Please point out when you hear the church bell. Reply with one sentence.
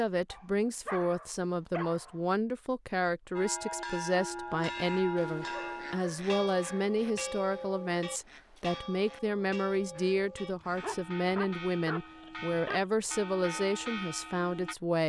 The church bell can be heard from 3.4 to 14.8 s.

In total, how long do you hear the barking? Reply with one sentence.
You can hear the barking for 6 seconds altogether.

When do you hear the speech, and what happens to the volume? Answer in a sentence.
The speech can be heard from 0.0 to 15.0 s, at a steady volume.